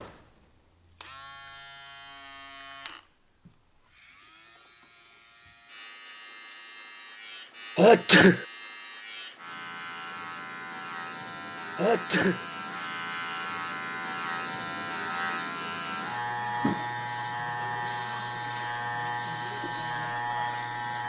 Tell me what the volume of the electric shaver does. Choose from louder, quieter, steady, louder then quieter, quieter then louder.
louder.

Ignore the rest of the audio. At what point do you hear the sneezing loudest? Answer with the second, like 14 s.
8 s.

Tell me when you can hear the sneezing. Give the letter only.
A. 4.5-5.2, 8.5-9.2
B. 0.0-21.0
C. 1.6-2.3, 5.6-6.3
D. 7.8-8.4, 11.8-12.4
D.